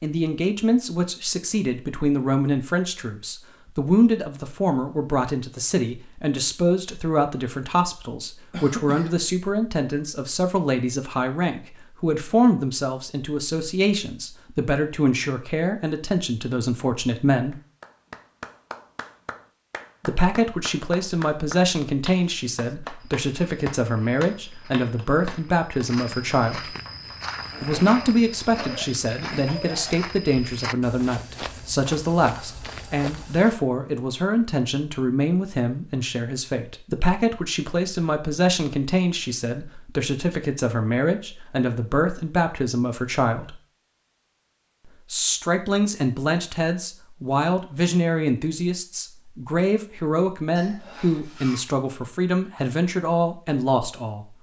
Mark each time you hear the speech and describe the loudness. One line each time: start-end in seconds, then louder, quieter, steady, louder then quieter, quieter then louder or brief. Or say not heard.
0.0-17.6 steady
20.1-26.7 steady
27.6-43.5 steady
45.1-54.2 steady.